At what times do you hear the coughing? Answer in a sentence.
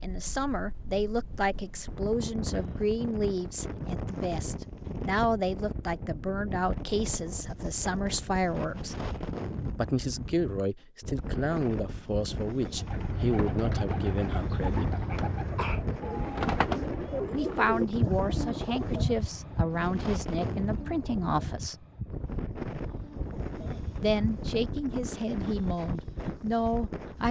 The coughing can be heard from 2.5 to 3.0 s and from 15.1 to 15.8 s.